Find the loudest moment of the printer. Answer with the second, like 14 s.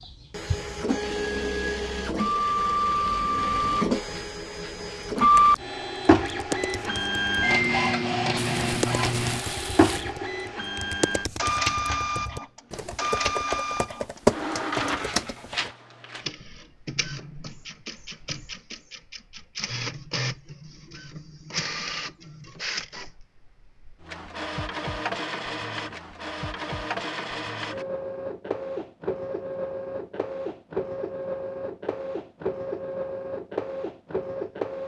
6 s.